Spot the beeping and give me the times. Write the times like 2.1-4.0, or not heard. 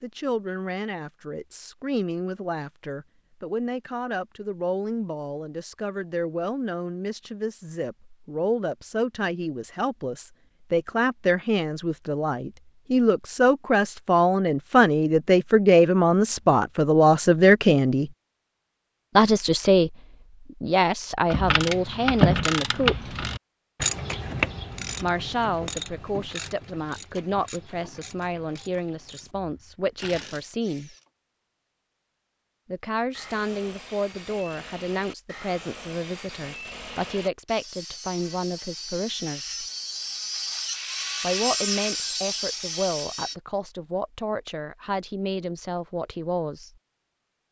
not heard.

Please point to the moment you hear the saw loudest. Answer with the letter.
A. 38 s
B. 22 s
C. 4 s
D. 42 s
D.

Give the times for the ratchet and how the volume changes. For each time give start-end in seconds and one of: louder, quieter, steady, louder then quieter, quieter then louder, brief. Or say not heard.
21.3-31.1 quieter.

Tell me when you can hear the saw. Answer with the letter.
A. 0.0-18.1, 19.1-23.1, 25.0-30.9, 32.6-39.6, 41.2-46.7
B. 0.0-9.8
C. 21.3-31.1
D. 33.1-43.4
D.